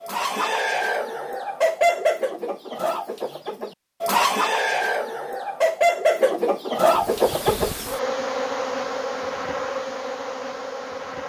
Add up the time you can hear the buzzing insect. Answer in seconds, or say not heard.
4 s.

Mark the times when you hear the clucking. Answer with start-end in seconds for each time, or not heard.
0.0-7.7.